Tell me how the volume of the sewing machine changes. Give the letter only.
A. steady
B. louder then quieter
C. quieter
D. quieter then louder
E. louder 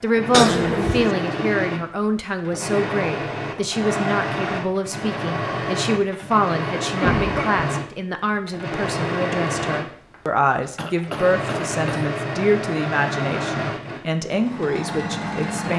A.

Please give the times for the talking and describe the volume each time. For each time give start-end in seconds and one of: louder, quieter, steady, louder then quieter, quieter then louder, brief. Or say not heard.
0.0-15.7 steady.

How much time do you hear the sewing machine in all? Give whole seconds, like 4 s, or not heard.
16 s.